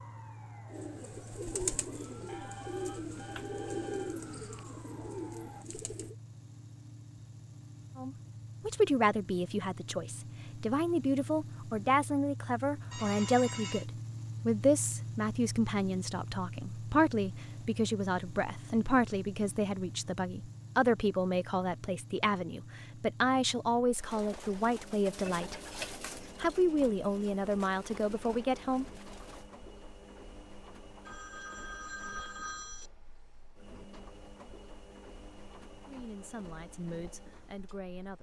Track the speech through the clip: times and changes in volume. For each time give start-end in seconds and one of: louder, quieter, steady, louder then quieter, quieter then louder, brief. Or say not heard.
8.0-25.6 steady
26.4-28.9 brief
35.9-38.1 brief.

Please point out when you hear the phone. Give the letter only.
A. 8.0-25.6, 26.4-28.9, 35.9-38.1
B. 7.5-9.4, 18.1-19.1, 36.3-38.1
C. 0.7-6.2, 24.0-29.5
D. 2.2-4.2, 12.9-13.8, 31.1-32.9
D.